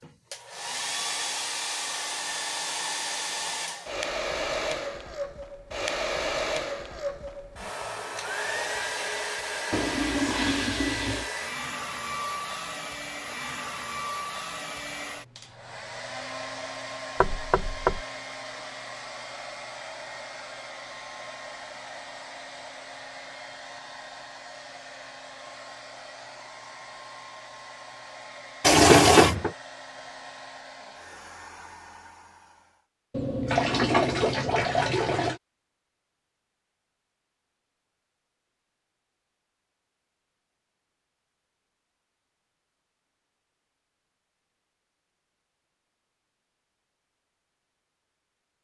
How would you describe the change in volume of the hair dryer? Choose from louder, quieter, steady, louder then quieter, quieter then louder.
quieter.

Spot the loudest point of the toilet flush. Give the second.
29 s.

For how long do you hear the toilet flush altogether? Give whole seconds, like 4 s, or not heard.
5 s.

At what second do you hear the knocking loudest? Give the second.
29 s.